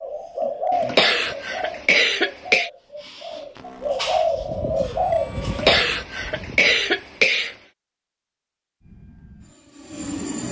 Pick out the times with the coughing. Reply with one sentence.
The coughing can be heard from 0.7 to 2.7 s and from 5.4 to 7.5 s.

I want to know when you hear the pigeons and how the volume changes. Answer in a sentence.
The pigeons can be heard from 0.0 to 5.8 s, getting quieter then louder.